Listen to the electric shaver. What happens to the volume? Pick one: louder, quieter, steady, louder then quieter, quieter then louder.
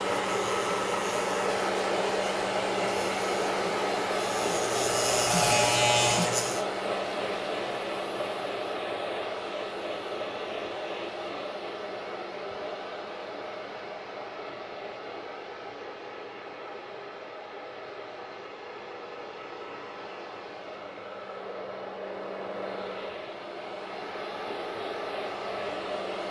louder.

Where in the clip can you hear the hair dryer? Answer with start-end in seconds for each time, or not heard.
0.0-26.2.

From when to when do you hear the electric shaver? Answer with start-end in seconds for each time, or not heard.
0.0-6.7.